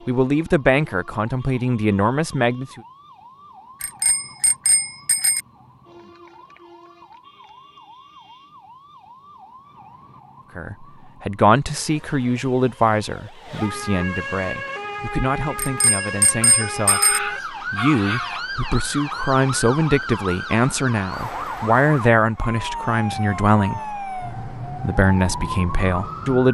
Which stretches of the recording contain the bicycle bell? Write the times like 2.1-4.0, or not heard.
3.8-5.4, 15.6-17.2.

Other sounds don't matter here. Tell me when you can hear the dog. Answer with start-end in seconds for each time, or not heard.
16.4-18.4.